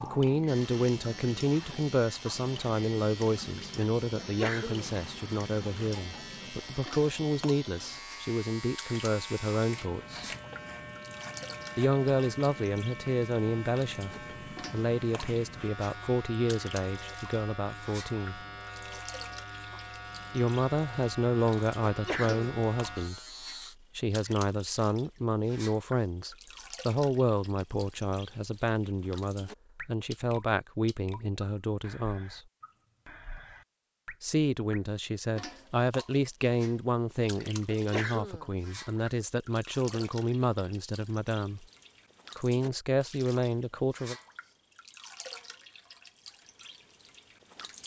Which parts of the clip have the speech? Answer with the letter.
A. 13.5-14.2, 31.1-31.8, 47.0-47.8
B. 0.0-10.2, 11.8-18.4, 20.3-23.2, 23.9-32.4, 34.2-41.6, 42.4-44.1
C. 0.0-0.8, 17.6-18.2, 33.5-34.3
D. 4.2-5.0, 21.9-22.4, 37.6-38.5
B.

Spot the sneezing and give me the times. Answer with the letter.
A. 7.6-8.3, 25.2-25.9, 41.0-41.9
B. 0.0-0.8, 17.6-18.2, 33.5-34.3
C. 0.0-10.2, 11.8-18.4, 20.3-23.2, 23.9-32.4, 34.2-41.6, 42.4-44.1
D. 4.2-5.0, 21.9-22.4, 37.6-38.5
D.